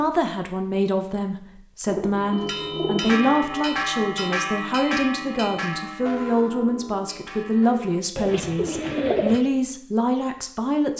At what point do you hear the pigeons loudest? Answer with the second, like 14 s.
9 s.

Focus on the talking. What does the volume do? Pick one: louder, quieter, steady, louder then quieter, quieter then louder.
steady.